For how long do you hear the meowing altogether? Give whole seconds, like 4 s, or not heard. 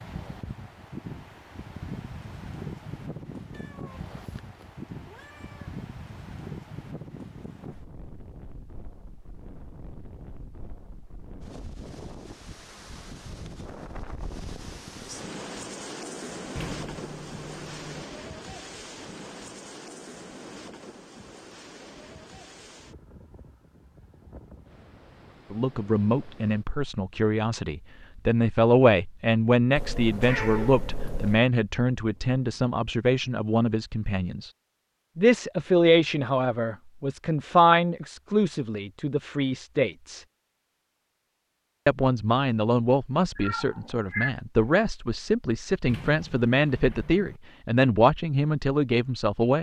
5 s.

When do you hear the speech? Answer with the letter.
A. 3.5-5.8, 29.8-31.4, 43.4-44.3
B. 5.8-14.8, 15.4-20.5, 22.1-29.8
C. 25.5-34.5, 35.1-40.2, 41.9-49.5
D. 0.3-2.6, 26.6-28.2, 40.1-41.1
C.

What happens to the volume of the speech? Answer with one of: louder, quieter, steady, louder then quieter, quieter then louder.
steady.